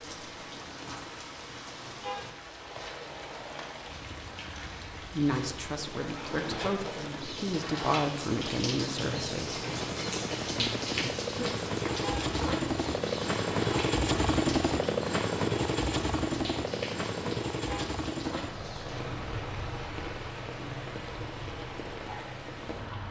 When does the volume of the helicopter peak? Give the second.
14 s.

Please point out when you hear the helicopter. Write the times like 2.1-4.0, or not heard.
2.5-23.0.